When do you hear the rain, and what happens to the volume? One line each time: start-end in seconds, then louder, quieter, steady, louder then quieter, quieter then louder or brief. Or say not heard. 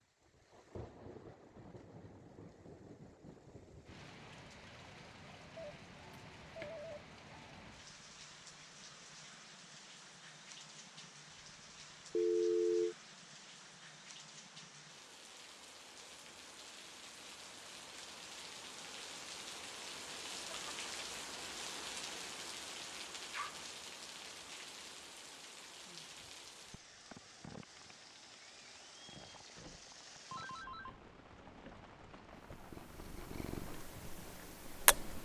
0.0-35.2 louder then quieter.